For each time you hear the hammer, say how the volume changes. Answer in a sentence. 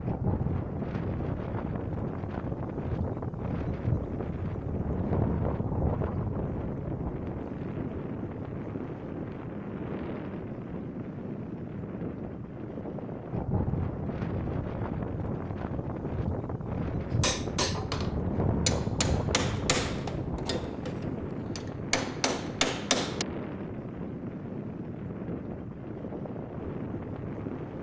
The hammer can be heard from 17.2 to 23.2 s, getting quieter then louder.